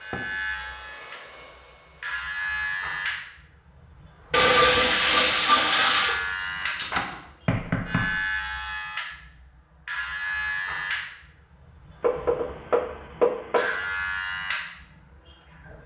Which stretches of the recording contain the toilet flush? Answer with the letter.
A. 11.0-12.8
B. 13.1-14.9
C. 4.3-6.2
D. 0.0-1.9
C.